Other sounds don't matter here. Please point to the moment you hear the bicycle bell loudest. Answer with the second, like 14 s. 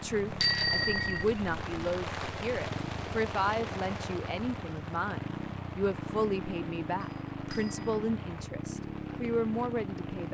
1 s.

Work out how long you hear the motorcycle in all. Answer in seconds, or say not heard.
10 s.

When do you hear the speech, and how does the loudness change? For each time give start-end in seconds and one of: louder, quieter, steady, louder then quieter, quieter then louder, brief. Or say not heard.
0.0-10.2 steady.